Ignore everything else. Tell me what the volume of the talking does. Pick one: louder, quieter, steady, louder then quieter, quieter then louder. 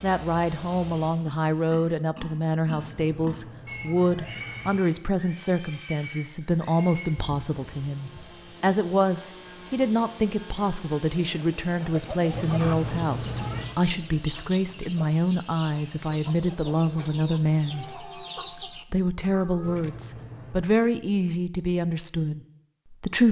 steady.